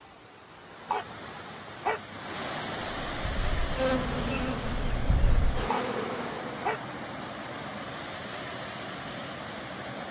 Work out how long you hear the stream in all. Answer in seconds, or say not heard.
10 s.